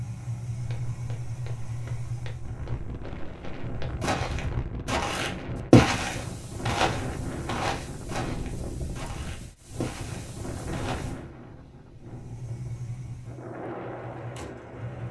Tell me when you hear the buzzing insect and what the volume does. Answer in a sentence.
The buzzing insect can't be heard in this clip.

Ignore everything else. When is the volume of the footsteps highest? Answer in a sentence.
The volume of the footsteps peaks at 6 seconds.